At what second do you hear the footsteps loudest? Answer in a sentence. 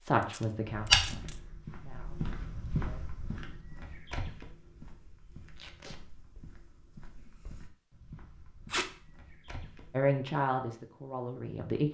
The loudest moment of the footsteps is at 1 second.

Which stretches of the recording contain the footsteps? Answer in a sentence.
The footsteps can be heard from 0.7 to 10.1 s.